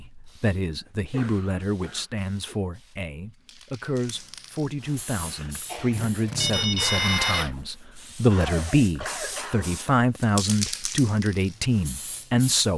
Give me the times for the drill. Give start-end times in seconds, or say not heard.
5.0-10.0.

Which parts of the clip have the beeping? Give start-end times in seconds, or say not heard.
6.3-7.5.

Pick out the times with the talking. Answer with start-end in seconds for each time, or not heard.
0.0-12.7.